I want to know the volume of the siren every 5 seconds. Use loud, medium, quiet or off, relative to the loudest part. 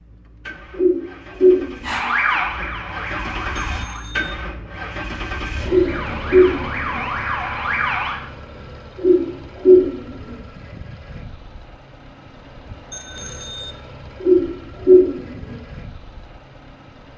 loud, loud, off, off.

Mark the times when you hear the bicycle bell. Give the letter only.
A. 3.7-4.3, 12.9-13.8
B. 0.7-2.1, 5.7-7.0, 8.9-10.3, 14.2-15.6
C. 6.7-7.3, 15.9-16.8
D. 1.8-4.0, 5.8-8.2
A.